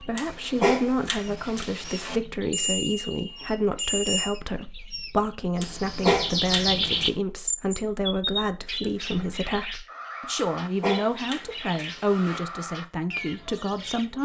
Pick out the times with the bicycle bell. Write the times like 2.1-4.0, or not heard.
2.5-4.3.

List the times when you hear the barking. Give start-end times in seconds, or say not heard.
0.1-2.2, 5.6-7.1, 10.4-12.4.